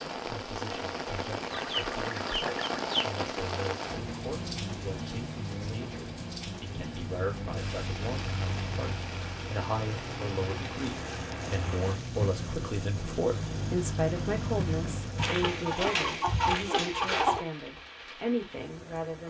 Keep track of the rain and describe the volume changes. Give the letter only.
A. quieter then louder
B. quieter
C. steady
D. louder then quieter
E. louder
B.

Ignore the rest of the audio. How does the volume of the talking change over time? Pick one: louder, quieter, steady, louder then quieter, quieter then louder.
louder.